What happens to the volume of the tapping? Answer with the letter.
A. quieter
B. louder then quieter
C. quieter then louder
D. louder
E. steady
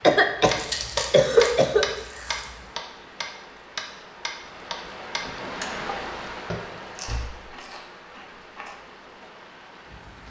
A.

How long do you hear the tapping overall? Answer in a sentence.
The tapping can be heard for 7 seconds in total.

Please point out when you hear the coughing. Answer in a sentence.
You can hear the coughing from 0.0 to 1.9 s.